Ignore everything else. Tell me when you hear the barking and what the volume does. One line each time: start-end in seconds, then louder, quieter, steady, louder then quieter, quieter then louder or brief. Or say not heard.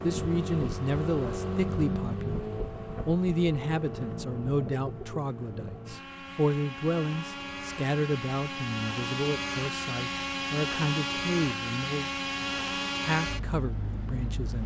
not heard.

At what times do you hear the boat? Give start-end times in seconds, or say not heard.
0.0-14.6.